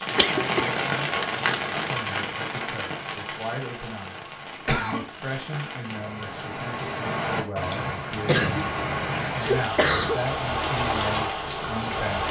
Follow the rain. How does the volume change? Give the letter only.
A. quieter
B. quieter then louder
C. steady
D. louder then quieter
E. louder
B.